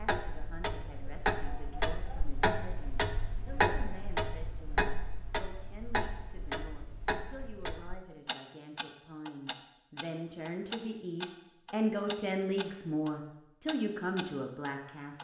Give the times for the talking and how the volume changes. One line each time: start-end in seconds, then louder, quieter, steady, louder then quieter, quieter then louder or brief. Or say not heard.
0.0-15.1 louder.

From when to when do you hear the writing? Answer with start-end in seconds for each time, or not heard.
not heard.